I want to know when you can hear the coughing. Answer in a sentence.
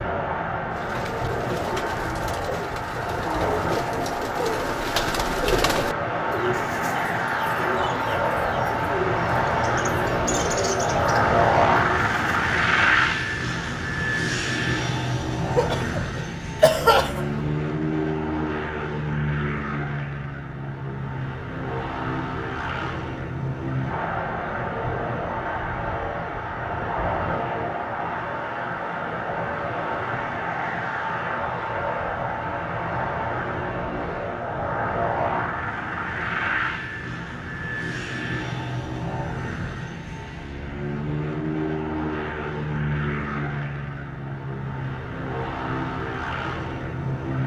You can hear the coughing from 15.5 to 17.4 s.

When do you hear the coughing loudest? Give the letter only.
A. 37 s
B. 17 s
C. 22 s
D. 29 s
B.